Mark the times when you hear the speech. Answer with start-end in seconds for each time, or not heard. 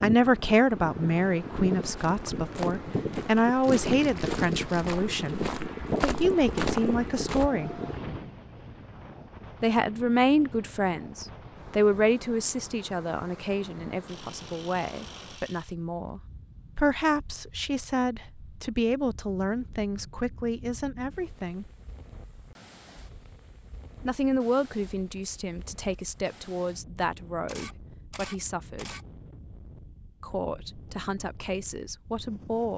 0.0-7.8, 9.6-21.6, 24.0-28.9, 30.2-32.7.